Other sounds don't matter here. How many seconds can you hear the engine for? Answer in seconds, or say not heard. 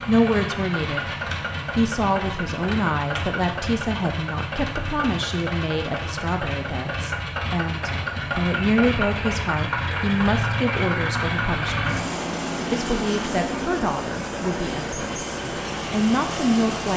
17 s.